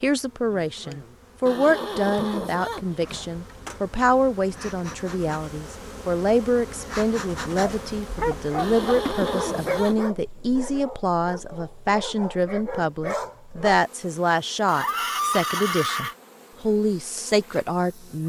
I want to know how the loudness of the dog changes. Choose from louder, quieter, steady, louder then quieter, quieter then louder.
quieter then louder.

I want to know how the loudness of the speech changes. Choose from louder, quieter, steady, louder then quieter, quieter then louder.
steady.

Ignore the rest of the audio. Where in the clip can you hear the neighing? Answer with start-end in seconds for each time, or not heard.
1.4-3.3, 8.6-10.1, 14.7-16.1.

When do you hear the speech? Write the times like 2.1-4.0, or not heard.
0.0-18.2.